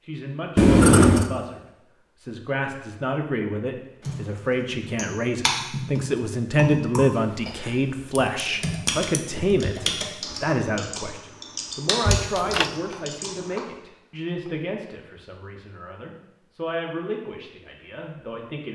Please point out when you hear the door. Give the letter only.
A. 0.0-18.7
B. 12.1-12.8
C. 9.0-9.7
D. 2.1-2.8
B.